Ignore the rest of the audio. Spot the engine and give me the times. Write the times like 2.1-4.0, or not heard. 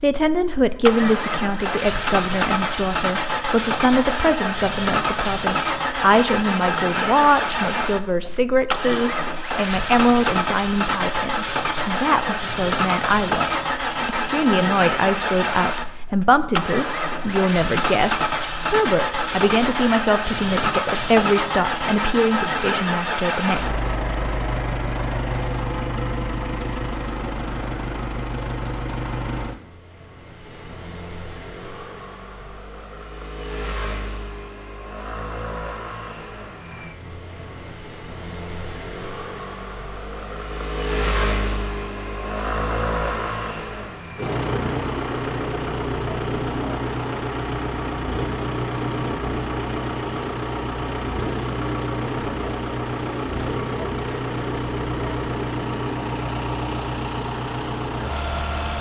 0.1-58.7.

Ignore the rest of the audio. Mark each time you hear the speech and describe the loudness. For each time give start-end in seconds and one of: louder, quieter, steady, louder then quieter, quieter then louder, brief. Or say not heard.
0.0-23.9 steady.